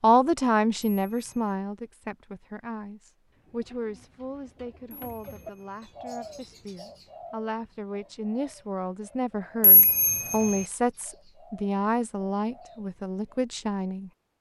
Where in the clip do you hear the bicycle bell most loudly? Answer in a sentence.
The volume of the bicycle bell peaks at 10 seconds.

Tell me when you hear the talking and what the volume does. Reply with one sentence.
You can hear the talking from 0.0 to 14.1 s, getting quieter then louder.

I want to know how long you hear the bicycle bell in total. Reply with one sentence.
You can hear the bicycle bell for 3 seconds altogether.